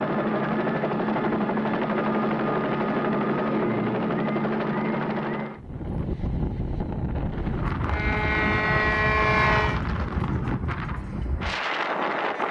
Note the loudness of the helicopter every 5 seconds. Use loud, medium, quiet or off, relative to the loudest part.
loud, loud, off.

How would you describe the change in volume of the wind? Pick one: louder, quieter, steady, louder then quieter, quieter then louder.
steady.